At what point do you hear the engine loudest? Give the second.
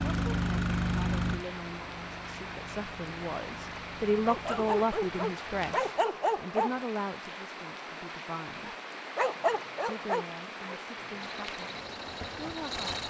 1 s.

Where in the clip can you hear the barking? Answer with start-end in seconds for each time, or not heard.
4.2-6.7, 8.7-10.8.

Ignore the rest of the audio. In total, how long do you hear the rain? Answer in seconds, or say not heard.
13 s.